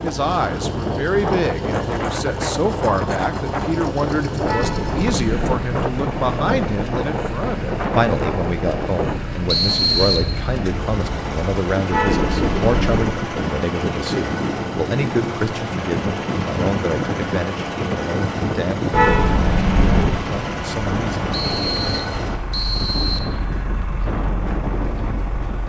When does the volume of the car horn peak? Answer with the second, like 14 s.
19 s.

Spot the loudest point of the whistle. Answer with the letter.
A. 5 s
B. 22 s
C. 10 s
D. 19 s
C.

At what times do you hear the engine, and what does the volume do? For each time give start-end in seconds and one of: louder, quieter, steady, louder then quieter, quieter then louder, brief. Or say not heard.
0.0-25.6 steady.